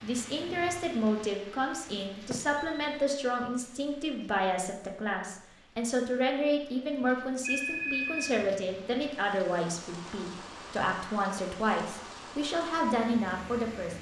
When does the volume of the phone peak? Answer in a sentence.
The loudest moment of the phone is at 8 seconds.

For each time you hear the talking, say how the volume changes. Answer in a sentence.
You can hear the talking from 0.0 to 13.9 s, at a steady volume.